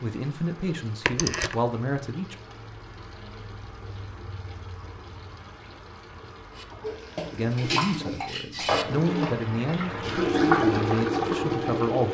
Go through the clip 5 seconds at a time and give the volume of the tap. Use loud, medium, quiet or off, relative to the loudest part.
quiet, medium, loud.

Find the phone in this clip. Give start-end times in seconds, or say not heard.
1.1-1.6.